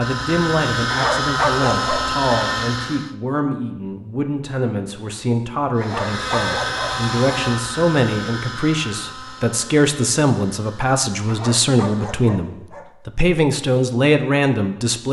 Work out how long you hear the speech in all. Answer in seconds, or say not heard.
15 s.